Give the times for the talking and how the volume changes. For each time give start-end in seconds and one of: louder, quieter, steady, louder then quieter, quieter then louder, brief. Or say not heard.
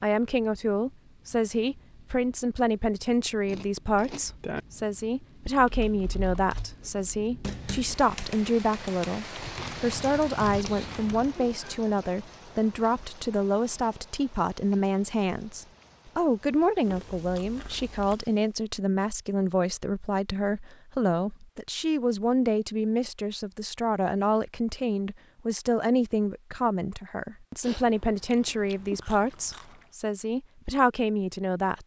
0.0-31.8 steady.